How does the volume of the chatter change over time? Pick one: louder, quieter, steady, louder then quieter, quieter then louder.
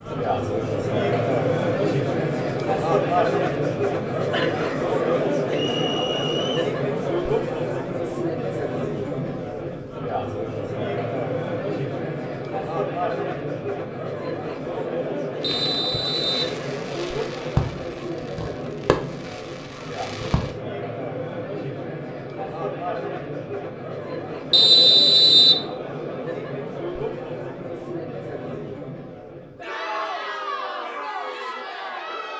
quieter.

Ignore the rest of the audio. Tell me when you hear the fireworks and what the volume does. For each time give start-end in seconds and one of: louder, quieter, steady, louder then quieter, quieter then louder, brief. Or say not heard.
15.4-20.5 louder then quieter.